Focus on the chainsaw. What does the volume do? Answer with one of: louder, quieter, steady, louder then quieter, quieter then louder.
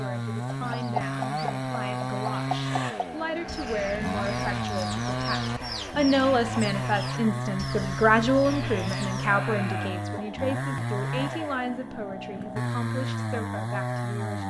steady.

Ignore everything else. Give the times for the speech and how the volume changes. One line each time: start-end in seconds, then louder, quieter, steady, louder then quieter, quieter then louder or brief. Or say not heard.
0.0-14.4 louder then quieter.